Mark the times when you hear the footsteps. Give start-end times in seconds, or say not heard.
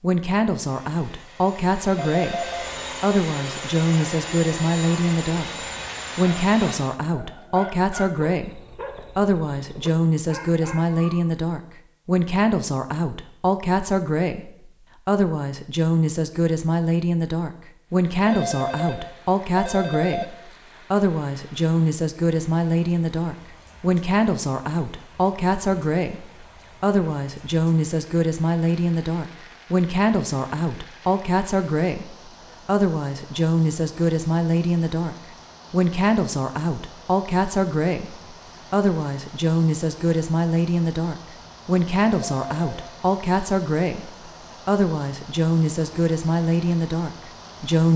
not heard.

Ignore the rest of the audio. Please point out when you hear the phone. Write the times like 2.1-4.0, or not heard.
1.9-2.7, 18.2-20.2, 42.1-43.0.